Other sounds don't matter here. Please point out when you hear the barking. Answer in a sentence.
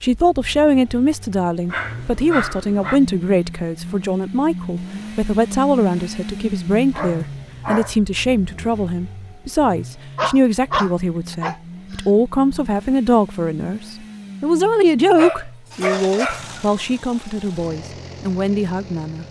The barking can be heard from 1.7 to 3.0 s, from 7.0 to 8.0 s, from 10.2 to 12.1 s and from 15.2 to 16.5 s.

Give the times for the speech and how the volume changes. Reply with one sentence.
You can hear the speech from 0.0 to 19.2 s, at a steady volume.